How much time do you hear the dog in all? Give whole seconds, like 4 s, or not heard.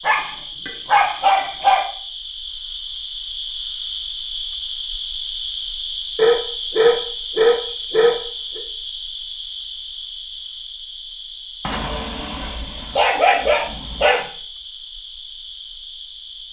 7 s.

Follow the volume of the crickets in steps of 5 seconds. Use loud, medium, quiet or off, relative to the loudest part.
loud, loud, medium, medium.